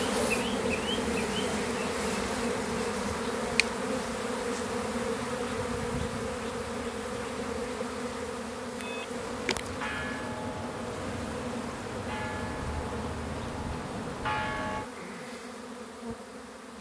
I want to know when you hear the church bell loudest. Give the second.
14 s.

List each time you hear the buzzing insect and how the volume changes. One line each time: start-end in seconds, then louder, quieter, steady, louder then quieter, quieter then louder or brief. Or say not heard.
0.0-16.7 quieter.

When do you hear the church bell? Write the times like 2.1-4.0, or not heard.
8.8-14.9.